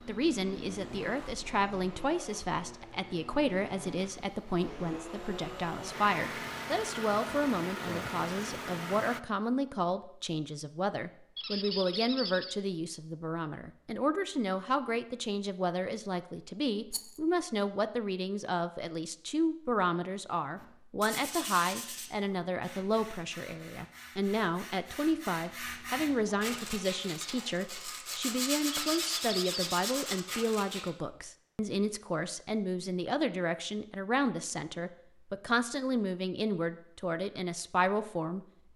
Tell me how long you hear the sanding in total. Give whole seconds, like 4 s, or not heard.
10 s.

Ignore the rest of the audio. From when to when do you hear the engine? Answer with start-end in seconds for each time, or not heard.
0.0-9.2.